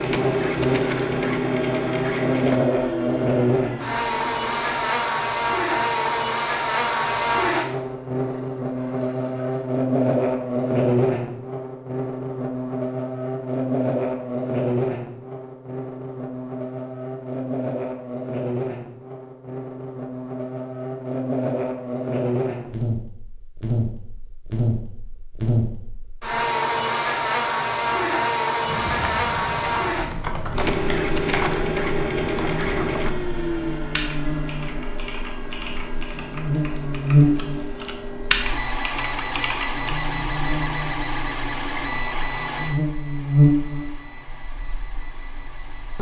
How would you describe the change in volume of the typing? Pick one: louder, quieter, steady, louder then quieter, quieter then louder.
quieter then louder.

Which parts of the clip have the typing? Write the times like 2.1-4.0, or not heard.
28.6-40.0.